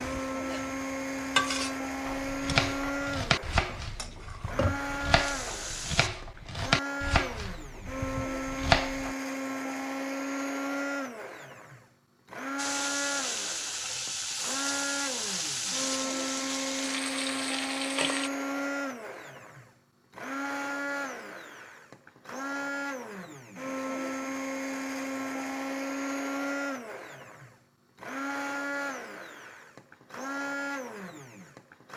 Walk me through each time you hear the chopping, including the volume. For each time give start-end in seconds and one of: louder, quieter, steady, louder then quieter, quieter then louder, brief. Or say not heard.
2.0-9.2 quieter then louder.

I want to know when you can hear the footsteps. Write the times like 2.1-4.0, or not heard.
not heard.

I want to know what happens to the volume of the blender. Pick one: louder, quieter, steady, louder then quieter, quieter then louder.
steady.